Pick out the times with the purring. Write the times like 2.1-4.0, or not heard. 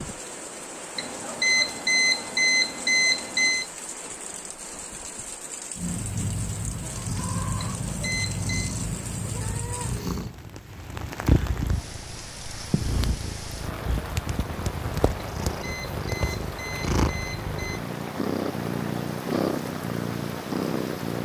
5.8-21.2.